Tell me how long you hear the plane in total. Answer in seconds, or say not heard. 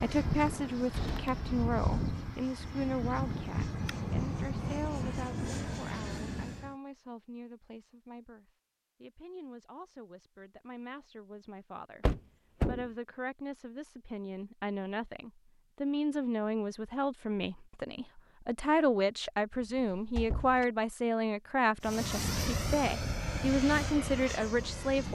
10 s.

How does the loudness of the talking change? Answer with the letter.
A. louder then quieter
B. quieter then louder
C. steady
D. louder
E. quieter
B.